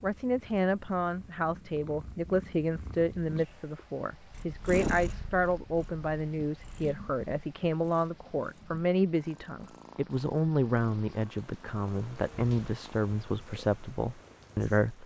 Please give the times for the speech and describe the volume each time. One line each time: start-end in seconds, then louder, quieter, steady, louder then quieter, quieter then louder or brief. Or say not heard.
0.0-15.0 steady.